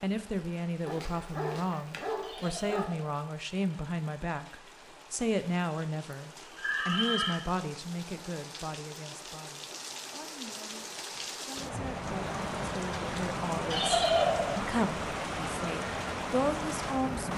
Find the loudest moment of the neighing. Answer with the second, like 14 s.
14 s.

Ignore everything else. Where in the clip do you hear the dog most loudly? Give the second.
2 s.